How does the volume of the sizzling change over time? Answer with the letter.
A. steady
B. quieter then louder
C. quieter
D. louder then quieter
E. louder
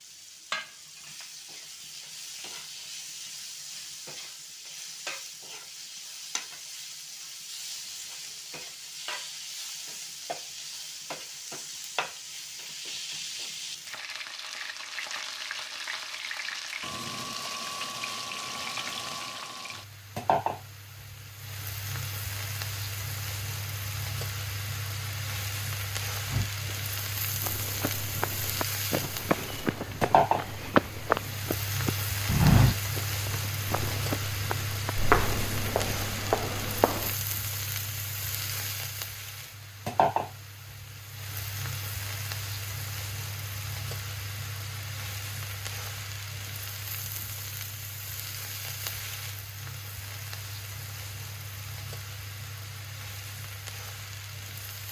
D.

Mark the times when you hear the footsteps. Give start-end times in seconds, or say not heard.
26.2-37.1.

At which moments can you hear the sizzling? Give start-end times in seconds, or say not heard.
0.0-54.8.